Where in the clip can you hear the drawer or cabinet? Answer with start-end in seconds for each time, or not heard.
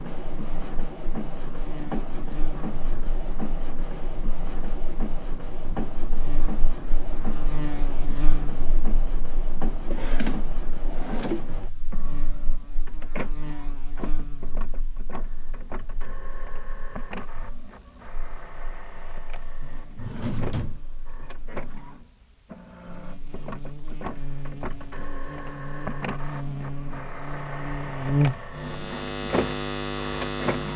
9.9-11.4, 19.6-21.4.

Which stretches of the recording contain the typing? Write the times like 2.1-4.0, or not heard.
not heard.